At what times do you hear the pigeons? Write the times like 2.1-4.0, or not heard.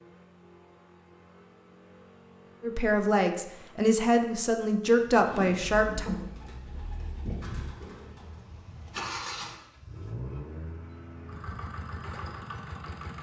5.3-8.6.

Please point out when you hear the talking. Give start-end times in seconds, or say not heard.
2.6-6.1.